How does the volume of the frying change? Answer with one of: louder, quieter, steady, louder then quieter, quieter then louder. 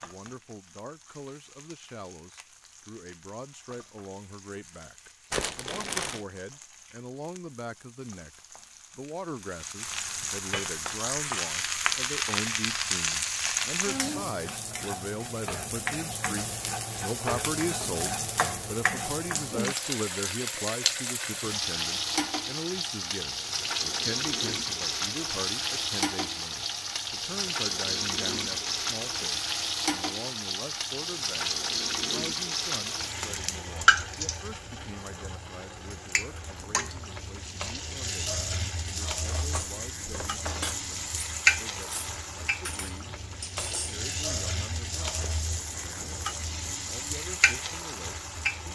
louder.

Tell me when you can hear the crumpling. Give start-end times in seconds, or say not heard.
5.3-6.2, 45.1-46.5.